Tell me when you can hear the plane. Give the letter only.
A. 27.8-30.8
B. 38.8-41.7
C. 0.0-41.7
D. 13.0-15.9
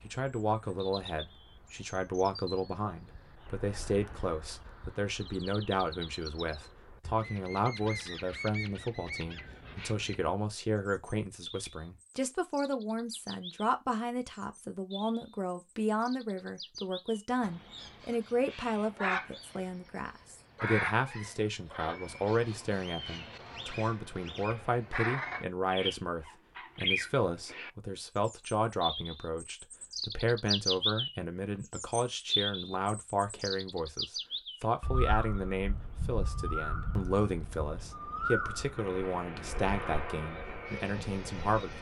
B.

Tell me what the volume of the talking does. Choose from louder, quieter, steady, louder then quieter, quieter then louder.
steady.